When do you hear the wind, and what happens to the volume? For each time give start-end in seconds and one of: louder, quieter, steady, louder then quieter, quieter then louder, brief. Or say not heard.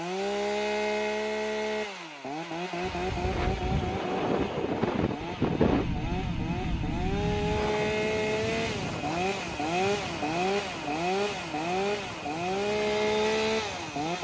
2.8-14.1 quieter.